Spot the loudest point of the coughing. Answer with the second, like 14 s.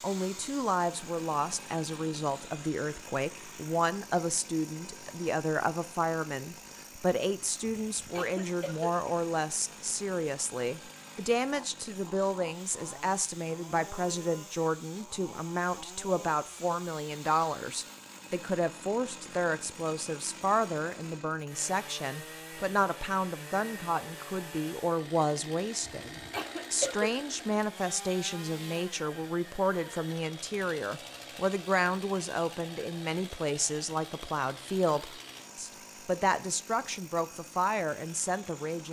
27 s.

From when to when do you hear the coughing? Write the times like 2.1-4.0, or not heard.
7.8-8.9, 25.9-27.4.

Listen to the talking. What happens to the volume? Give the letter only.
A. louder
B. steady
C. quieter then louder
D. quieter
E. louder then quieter
B.